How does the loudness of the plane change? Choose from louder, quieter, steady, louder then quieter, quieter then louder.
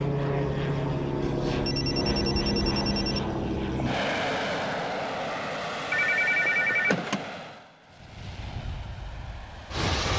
quieter.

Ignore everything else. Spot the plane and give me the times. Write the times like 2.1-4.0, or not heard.
0.0-10.1.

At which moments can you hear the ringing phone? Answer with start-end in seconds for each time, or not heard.
1.2-3.2, 5.9-7.2.